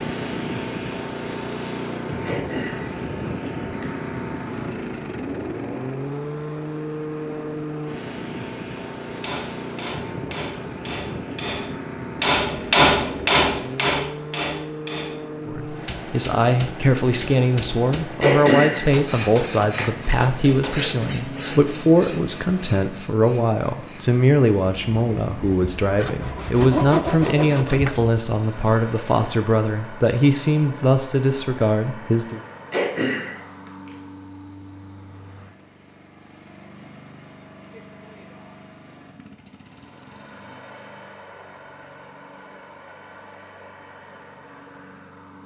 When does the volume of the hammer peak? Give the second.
13 s.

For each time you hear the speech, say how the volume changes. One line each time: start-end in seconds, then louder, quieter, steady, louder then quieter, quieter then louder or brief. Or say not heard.
15.4-32.4 steady.